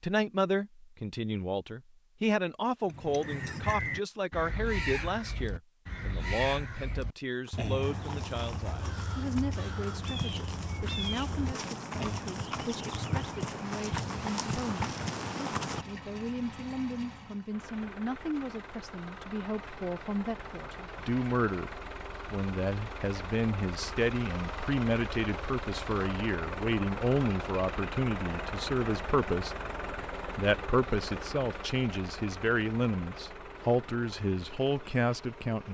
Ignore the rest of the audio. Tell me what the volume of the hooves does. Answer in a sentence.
The loudness of the hooves goes up.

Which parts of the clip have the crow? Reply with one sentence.
You can hear the crow from 2.9 to 12.4 s.